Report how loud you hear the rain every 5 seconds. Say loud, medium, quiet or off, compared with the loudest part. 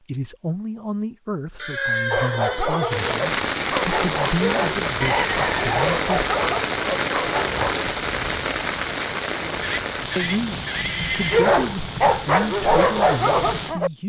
loud, loud, medium.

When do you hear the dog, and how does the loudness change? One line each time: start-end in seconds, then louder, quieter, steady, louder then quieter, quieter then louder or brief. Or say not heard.
2.1-7.8 steady
11.3-13.9 brief.